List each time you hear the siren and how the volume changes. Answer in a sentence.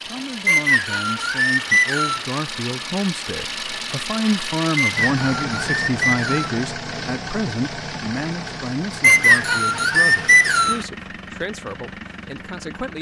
You can't hear the siren here.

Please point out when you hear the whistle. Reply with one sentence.
The whistle can be heard from 0.5 to 2.2 s, from 4.8 to 6.5 s and from 9.0 to 10.8 s.